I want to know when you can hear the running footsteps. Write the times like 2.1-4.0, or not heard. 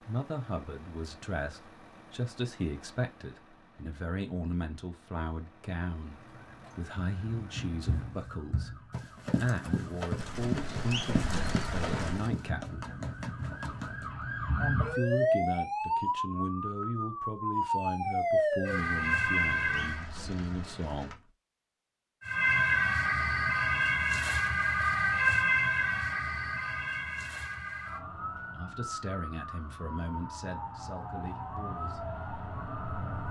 7.8-14.2.